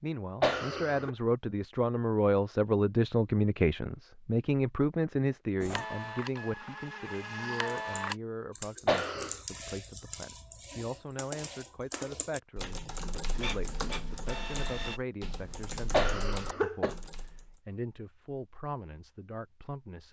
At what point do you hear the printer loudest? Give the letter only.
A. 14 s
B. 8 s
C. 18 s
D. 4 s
B.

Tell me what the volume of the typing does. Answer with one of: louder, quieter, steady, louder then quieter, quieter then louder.
steady.